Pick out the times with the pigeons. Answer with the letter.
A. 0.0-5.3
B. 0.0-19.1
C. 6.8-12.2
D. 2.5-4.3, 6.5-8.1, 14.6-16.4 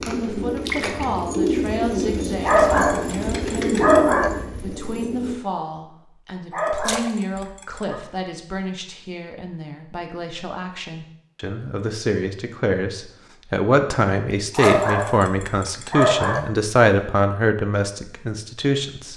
A.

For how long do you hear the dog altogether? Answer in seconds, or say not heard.
5 s.